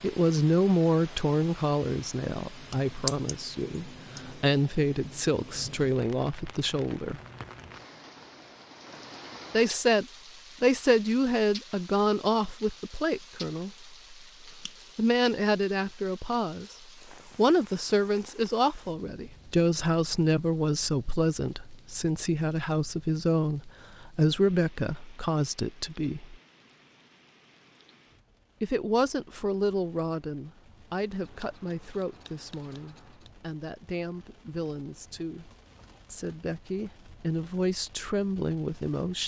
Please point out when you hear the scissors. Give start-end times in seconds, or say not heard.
2.7-3.4, 14.5-14.9, 31.1-33.3.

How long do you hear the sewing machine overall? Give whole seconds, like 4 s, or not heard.
not heard.